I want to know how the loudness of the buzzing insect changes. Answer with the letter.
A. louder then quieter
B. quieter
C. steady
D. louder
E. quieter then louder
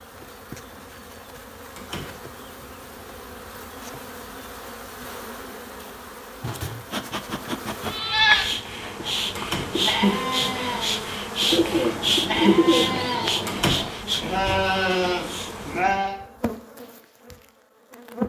A.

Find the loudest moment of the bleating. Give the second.
8 s.